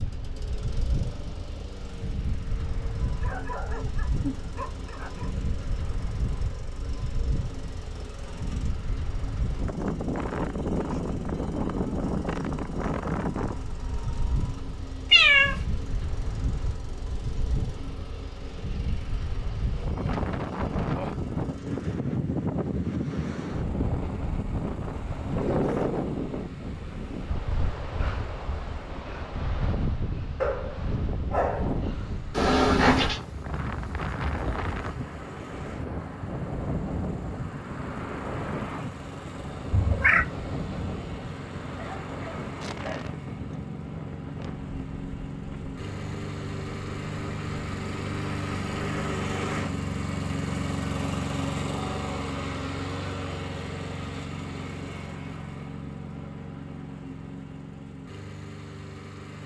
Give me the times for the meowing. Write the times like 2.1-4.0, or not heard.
15.1-15.6, 32.4-33.2, 39.7-40.2.